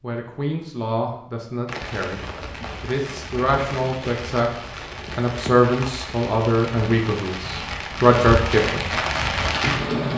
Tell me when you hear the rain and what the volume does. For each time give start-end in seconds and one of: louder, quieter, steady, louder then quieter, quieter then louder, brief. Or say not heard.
1.6-10.1 louder.